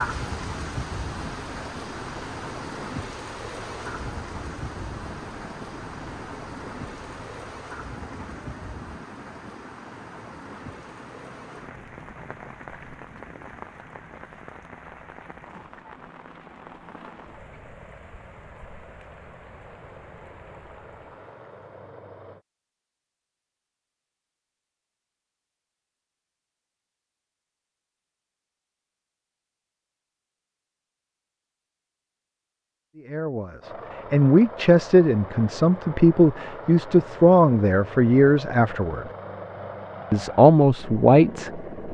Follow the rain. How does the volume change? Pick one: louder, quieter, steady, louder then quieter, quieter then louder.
quieter.